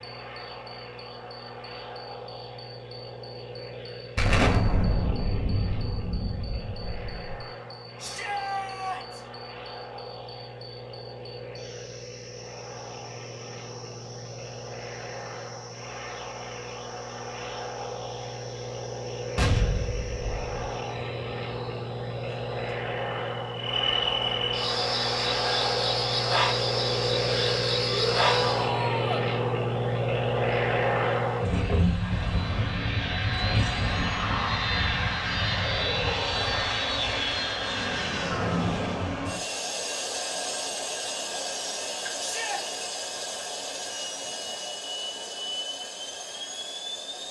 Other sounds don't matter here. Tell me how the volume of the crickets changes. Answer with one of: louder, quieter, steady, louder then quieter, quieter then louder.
louder.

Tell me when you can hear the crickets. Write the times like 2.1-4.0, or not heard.
0.0-28.6.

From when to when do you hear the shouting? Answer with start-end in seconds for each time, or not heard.
8.0-9.2, 27.9-29.2, 42.1-42.6.